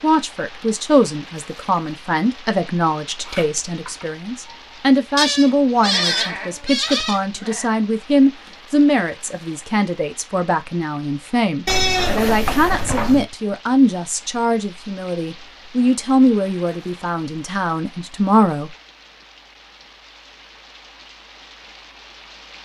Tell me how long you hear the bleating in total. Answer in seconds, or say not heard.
4 s.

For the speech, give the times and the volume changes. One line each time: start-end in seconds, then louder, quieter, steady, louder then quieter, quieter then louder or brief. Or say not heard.
0.0-18.7 steady.